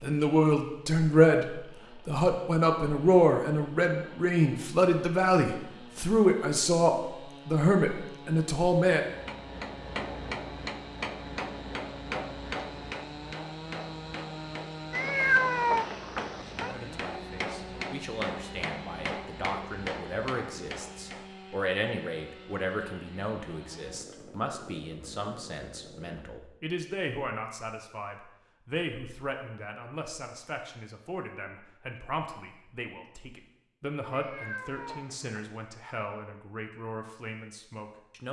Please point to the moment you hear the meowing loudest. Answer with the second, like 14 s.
15 s.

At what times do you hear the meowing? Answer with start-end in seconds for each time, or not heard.
14.9-16.8, 34.1-35.5.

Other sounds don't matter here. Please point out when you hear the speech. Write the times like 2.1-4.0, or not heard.
0.0-9.0, 16.7-38.2.